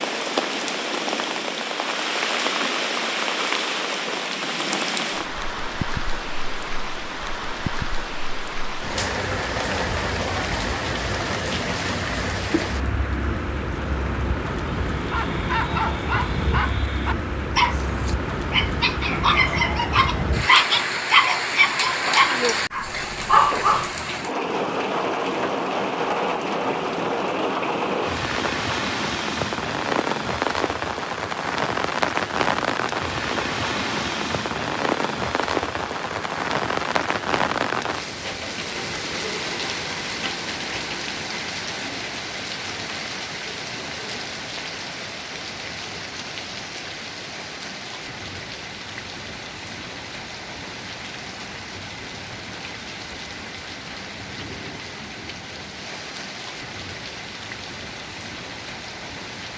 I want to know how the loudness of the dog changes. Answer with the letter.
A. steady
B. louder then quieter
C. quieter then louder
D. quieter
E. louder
E.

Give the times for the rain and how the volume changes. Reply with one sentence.
The rain can be heard from 0.0 to 59.5 s, getting quieter.